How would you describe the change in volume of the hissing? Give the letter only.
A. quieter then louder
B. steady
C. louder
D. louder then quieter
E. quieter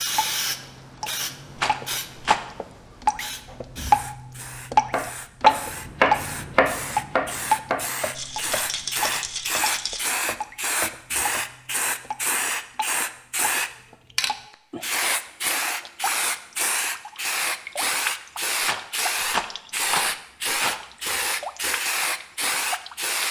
C.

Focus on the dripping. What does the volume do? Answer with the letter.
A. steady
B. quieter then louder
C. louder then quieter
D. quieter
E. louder
C.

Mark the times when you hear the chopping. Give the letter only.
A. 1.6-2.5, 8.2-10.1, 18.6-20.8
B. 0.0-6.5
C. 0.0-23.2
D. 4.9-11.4
D.